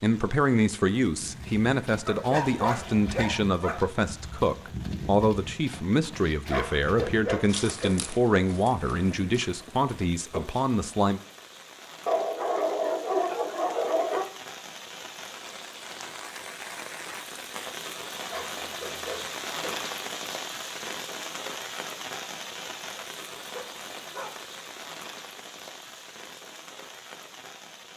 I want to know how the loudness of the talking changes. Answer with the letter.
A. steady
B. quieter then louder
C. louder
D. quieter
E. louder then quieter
A.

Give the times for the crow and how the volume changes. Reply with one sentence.
The crow can't be heard in this clip.